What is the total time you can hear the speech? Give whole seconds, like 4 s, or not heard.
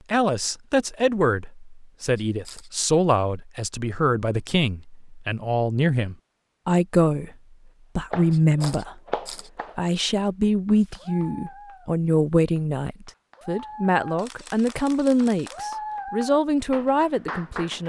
16 s.